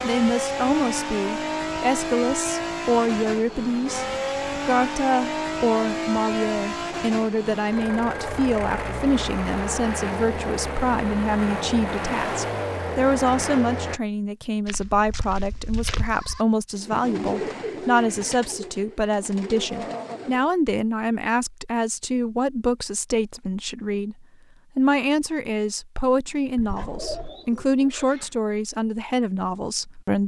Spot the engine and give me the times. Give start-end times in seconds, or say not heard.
0.0-14.0.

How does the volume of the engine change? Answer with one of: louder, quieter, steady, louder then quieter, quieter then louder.
steady.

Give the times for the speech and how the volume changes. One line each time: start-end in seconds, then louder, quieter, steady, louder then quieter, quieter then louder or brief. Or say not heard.
0.0-30.2 steady.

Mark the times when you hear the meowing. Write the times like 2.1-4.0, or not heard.
not heard.